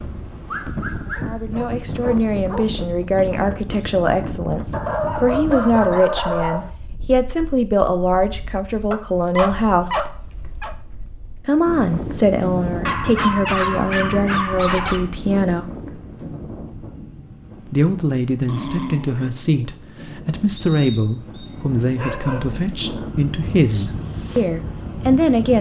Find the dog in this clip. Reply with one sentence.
The dog can be heard from 0.5 to 2.6 s, from 4.7 to 6.7 s, from 8.9 to 10.8 s, from 12.8 to 15.1 s, from 18.4 to 19.3 s and from 21.5 to 22.8 s.